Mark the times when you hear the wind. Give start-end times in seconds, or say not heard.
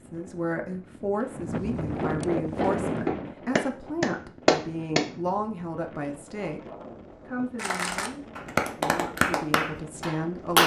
0.0-10.6.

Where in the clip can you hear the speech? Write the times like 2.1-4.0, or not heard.
0.0-10.6.